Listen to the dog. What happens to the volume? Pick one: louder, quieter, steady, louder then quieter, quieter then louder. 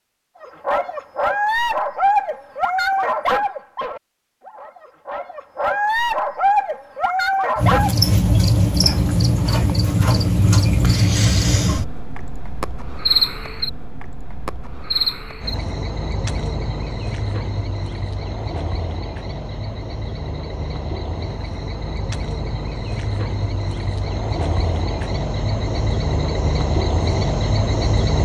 quieter then louder.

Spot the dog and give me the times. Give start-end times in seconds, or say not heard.
0.4-8.0.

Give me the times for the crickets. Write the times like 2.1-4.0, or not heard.
7.5-28.1.